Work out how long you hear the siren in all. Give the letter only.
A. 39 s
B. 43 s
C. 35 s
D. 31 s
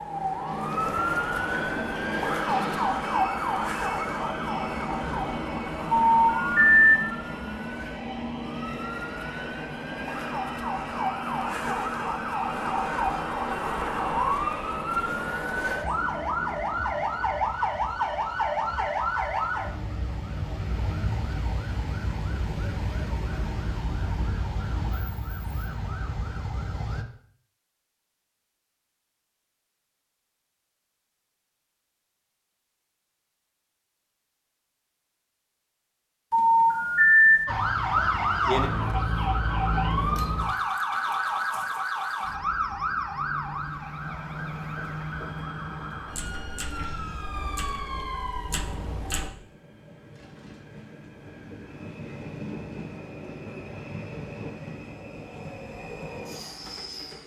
A.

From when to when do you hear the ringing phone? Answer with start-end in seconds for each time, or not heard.
5.9-7.0, 36.3-37.4.